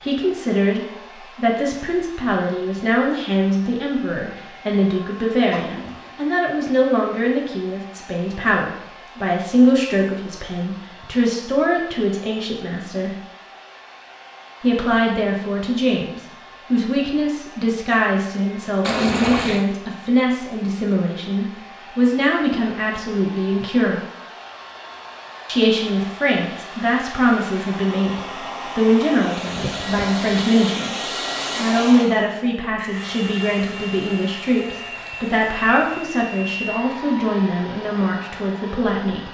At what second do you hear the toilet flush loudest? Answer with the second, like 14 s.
19 s.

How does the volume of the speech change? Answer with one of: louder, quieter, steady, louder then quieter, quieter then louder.
steady.